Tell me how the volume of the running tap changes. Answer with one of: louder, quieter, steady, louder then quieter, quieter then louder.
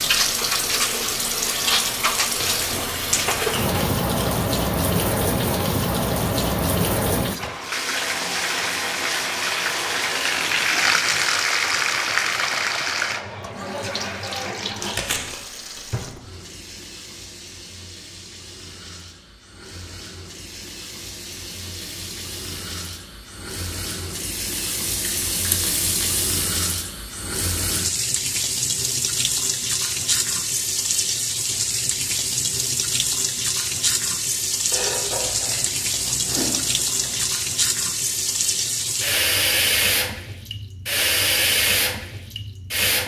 quieter then louder.